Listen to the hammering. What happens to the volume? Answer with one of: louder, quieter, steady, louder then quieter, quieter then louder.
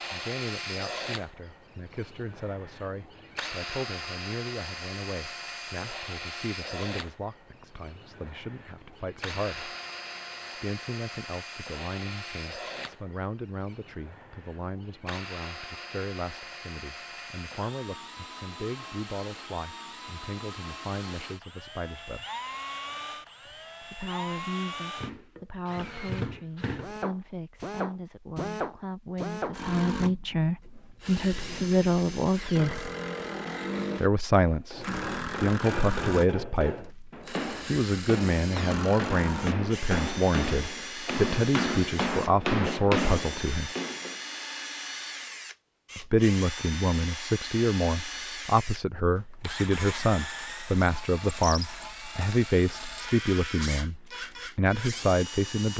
louder.